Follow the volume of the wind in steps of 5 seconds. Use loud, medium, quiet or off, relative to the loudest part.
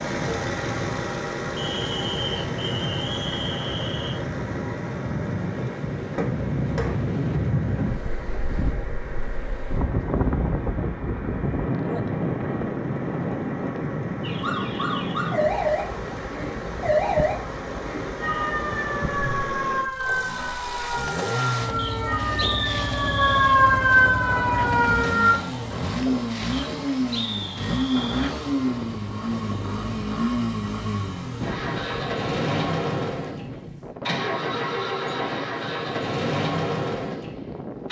medium, loud, loud, medium, medium, medium, medium, medium.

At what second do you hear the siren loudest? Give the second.
24 s.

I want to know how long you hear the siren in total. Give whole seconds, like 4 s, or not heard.
11 s.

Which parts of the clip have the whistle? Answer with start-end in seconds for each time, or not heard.
1.6-4.2, 21.8-23.6, 26.5-28.3.